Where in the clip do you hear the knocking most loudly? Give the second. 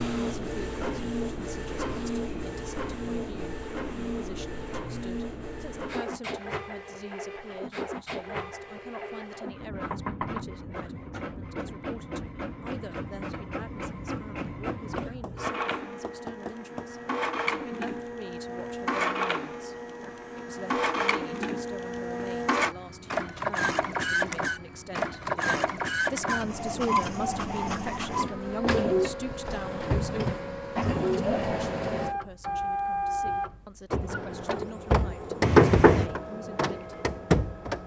36 s.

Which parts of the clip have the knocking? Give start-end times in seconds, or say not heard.
9.9-10.5, 14.9-16.9, 35.4-36.0.